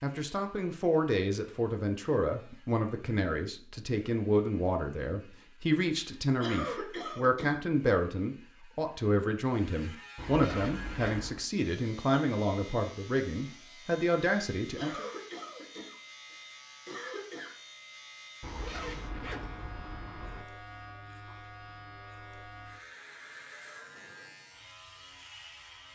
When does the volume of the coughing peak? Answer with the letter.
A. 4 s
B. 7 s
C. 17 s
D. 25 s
B.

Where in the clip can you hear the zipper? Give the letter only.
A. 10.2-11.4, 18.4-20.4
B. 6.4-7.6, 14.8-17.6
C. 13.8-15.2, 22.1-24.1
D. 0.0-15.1
A.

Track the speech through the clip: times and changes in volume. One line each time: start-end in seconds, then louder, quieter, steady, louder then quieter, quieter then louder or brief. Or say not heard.
0.0-15.1 steady.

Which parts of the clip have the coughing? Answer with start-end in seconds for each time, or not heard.
6.4-7.6, 14.8-17.6.